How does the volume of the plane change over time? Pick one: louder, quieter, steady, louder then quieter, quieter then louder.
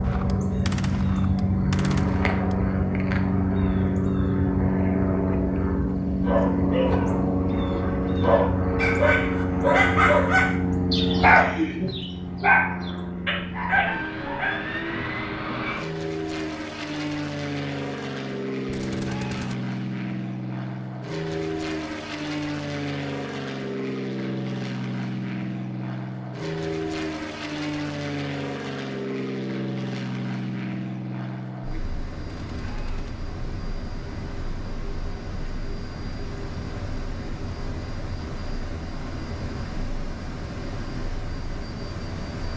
quieter.